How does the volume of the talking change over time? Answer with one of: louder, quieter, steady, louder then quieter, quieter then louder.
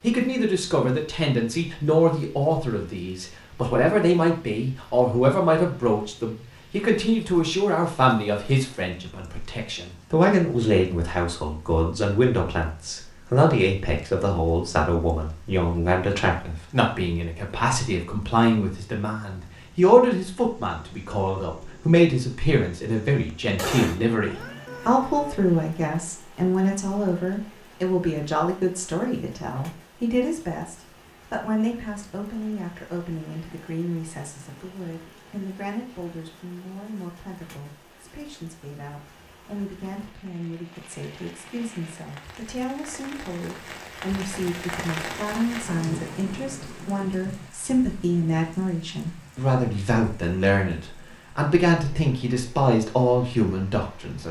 quieter then louder.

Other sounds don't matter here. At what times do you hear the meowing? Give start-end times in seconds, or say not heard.
23.6-25.4.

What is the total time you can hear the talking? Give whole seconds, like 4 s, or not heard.
54 s.